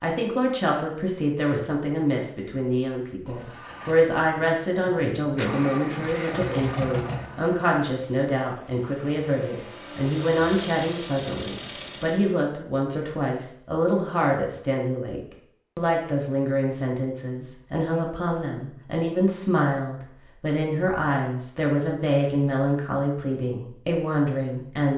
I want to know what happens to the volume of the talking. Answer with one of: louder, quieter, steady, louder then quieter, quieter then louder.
steady.